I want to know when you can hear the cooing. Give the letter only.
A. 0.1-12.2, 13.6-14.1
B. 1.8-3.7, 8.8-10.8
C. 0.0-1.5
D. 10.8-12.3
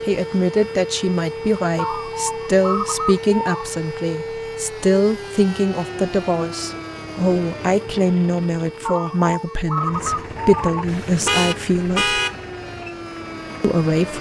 B.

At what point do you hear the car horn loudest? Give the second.
12 s.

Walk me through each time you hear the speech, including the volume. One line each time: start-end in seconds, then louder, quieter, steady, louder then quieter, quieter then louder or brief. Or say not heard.
0.1-12.2 steady
13.6-14.1 brief.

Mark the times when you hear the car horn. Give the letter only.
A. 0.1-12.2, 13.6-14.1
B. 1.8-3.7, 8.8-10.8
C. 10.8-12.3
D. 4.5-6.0
C.